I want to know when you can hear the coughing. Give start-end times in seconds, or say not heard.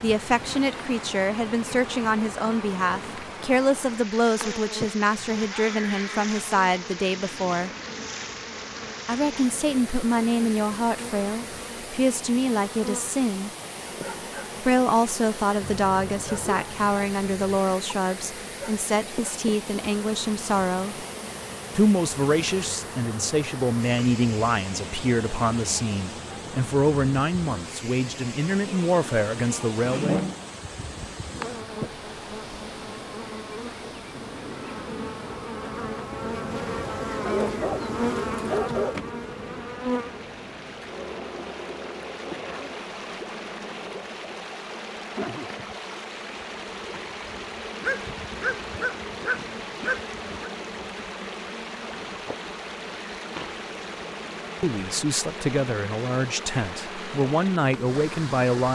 29.8-30.4.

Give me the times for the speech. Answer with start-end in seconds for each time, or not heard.
0.0-7.7, 9.1-13.5, 14.6-21.1, 21.8-30.2, 54.6-58.7.